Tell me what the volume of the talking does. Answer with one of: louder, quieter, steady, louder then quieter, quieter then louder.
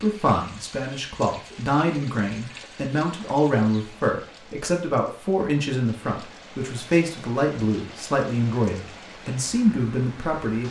steady.